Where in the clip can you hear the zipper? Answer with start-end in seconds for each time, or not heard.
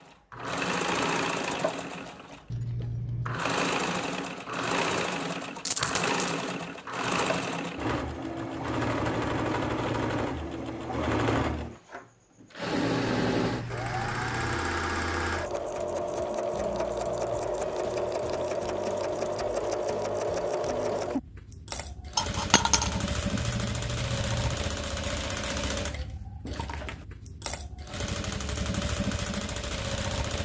2.5-3.4, 12.8-14.7, 23.3-24.6.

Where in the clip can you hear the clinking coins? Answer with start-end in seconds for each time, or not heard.
5.7-6.3, 22.1-23.0.